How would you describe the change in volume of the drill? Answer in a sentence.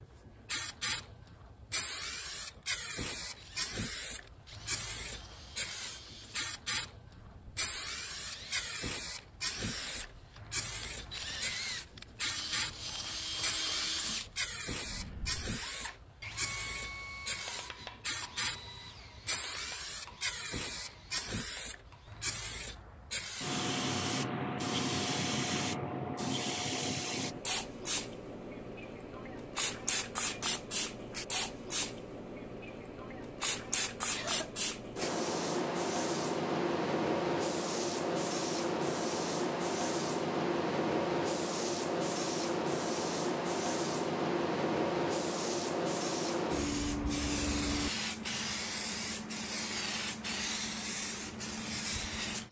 The volume of the drill goes up, then down.